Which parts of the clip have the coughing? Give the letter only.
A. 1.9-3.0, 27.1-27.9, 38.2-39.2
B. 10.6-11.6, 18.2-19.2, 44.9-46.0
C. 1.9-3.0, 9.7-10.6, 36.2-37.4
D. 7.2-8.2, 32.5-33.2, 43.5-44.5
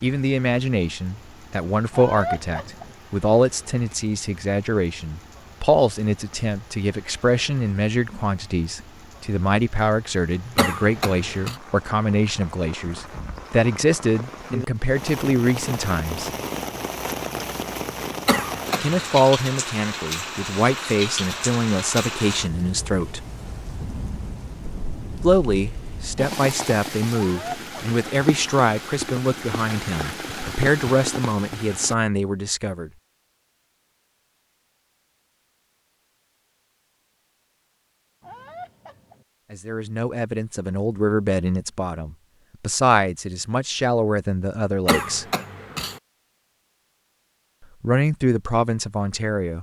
B.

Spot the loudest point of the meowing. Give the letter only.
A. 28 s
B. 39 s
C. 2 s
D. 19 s
C.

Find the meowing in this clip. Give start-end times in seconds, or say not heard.
1.9-3.0, 27.1-27.9, 38.2-39.2.